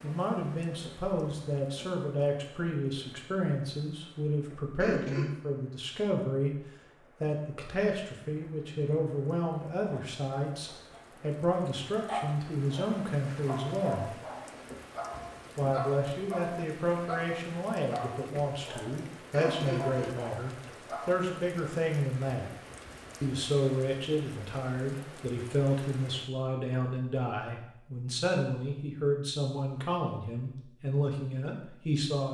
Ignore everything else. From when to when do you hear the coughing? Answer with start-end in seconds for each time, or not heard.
4.8-5.3, 19.3-20.4.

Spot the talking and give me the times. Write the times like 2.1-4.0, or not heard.
0.0-6.6, 7.2-14.1, 15.6-22.5, 23.2-32.2.